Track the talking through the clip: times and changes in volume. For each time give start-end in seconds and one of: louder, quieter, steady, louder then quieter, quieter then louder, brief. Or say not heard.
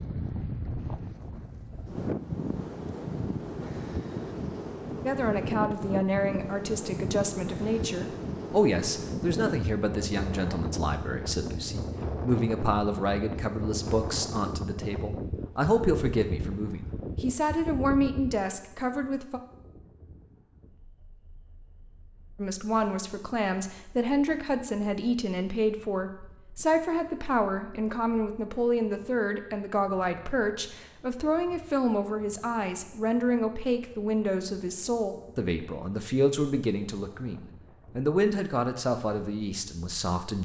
5.0-19.4 steady
22.4-40.4 steady.